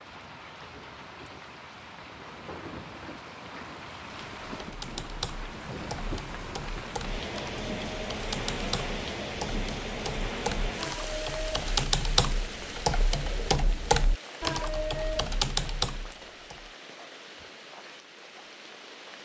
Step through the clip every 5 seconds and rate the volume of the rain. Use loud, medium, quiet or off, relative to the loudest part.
medium, loud, loud, medium.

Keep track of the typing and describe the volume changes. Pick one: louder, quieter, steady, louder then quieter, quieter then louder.
louder.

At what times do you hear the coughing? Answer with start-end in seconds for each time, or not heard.
not heard.